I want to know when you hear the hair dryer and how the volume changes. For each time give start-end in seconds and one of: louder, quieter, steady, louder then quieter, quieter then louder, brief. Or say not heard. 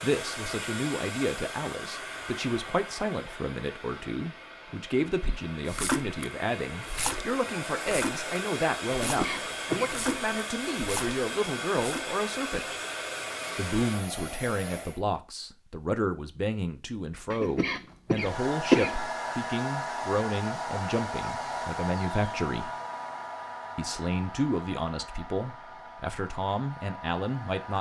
0.0-15.0 quieter then louder
18.1-27.7 quieter.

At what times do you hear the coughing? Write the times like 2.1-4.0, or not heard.
9.0-9.9, 17.3-18.9.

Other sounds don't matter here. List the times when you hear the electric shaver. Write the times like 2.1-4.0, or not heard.
not heard.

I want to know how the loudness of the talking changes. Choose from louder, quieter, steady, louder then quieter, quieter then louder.
steady.